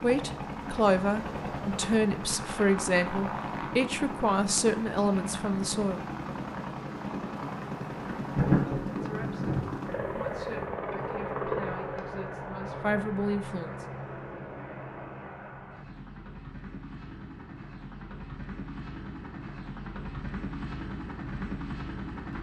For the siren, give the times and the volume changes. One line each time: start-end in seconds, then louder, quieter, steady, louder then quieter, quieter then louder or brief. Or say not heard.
not heard.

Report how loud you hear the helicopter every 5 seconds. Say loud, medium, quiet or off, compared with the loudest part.
loud, loud, loud, medium, loud.